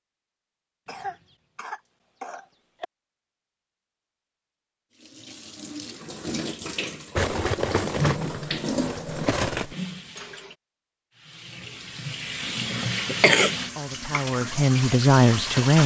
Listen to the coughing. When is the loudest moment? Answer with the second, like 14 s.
13 s.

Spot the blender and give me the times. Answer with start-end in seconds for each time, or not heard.
not heard.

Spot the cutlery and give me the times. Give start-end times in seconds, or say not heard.
7.2-10.6.